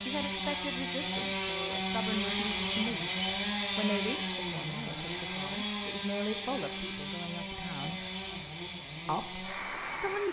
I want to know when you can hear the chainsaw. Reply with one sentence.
You can hear the chainsaw from 0.0 to 10.2 s.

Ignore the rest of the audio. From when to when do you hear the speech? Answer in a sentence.
The speech can be heard from 0.0 to 8.1 s and from 9.1 to 10.2 s.